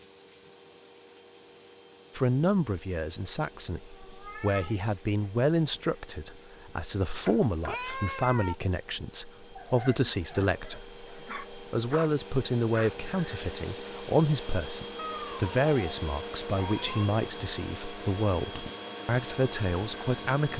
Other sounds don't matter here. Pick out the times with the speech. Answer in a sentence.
The speech can be heard from 2.1 to 20.5 s.